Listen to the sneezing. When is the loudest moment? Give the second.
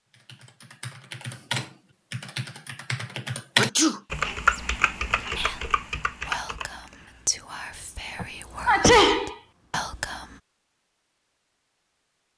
9 s.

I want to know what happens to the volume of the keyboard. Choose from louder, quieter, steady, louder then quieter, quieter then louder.
louder then quieter.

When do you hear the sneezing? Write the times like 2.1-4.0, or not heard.
3.5-4.0, 8.2-9.8.